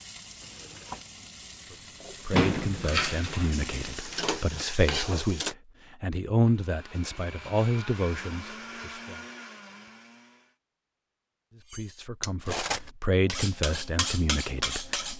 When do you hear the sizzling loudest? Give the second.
5 s.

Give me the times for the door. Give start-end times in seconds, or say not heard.
2.3-4.7.